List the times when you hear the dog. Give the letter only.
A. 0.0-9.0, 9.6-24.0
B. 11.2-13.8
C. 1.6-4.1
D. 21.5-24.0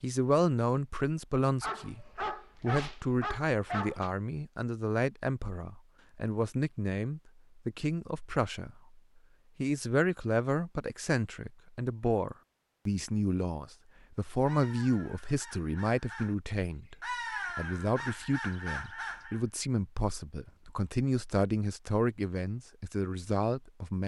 C.